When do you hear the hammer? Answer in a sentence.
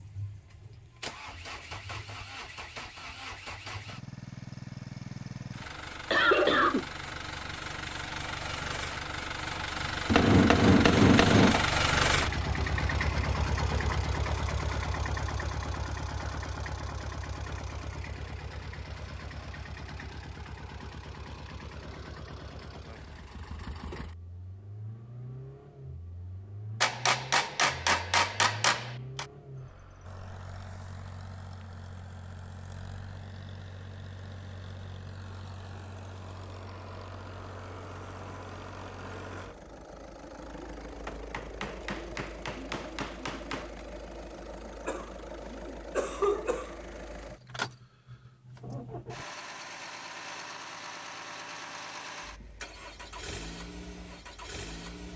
The hammer can be heard from 10.1 to 11.7 s, from 26.8 to 29.2 s and from 41.0 to 43.9 s.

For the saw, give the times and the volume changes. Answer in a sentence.
The saw can't be heard in this clip.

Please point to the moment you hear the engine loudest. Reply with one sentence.
The loudest moment of the engine is at 12 seconds.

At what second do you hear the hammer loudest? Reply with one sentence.
The loudest moment of the hammer is at 11 seconds.